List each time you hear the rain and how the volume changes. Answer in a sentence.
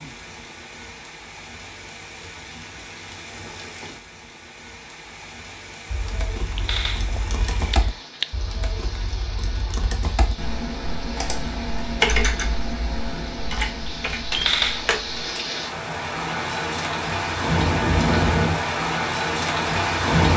The rain can be heard from 0.0 to 20.3 s, getting louder.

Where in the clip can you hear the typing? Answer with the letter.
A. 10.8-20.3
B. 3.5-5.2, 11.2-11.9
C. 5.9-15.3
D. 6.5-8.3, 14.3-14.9
C.